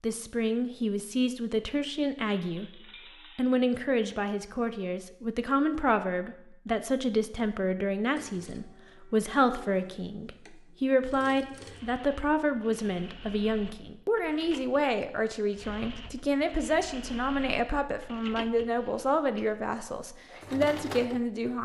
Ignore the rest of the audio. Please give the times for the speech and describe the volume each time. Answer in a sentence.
The speech can be heard from 0.0 to 21.6 s, at a steady volume.